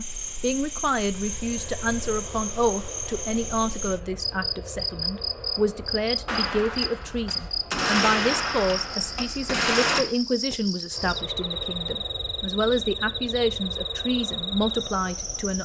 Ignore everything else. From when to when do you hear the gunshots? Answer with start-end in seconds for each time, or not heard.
6.2-10.0.